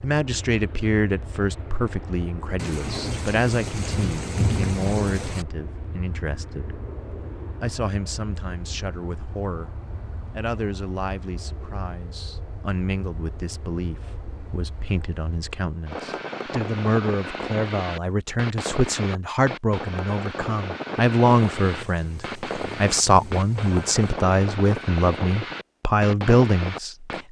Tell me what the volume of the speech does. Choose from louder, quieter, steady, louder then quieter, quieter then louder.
quieter then louder.